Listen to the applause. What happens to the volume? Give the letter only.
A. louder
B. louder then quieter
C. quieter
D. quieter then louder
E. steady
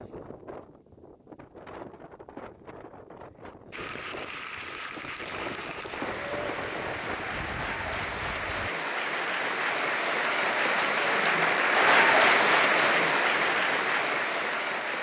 A.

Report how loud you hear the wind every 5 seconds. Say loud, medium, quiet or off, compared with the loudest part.
medium, loud, off.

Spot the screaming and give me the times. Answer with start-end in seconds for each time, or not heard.
not heard.